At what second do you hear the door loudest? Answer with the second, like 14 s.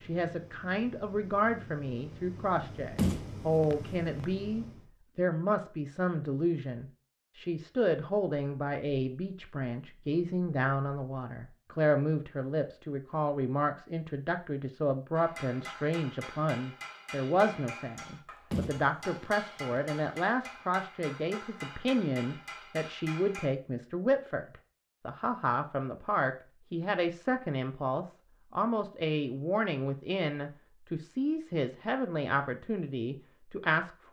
3 s.